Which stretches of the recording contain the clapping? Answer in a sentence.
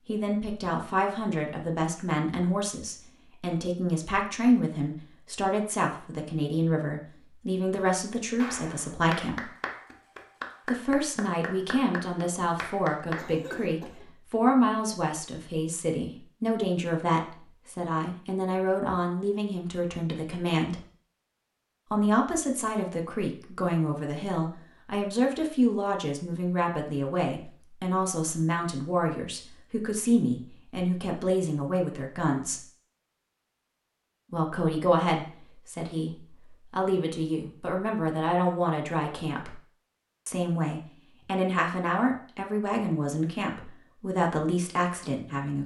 You can hear the clapping from 8.3 to 13.3 s.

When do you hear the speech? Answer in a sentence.
You can hear the speech from 0.1 to 9.4 s, from 10.7 to 20.9 s, from 21.9 to 32.6 s, from 34.3 to 39.5 s and from 40.2 to 45.6 s.